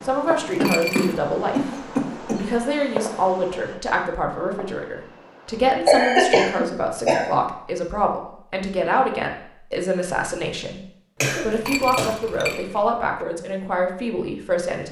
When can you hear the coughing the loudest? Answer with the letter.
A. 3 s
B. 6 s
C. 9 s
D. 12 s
B.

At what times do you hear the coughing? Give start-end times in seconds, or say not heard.
0.6-2.4, 5.8-7.3, 11.2-12.8.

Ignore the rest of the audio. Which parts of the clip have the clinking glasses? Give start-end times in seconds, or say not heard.
0.2-1.2, 11.4-13.2.